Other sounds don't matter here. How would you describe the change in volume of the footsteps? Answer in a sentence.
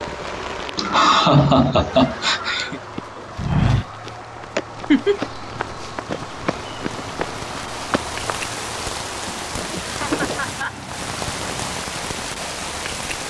The volume of the footsteps goes down, then up.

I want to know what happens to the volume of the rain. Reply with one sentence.
The volume of the rain goes down, then up.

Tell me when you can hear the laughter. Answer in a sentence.
You can hear the laughter from 0.8 to 2.8 s, from 4.5 to 5.2 s and from 9.5 to 10.8 s.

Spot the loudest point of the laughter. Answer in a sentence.
The loudest moment of the laughter is at 1 second.